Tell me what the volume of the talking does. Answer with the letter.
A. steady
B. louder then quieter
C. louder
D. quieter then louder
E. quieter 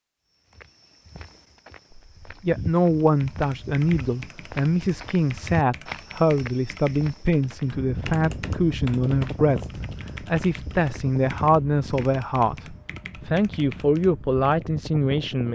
A.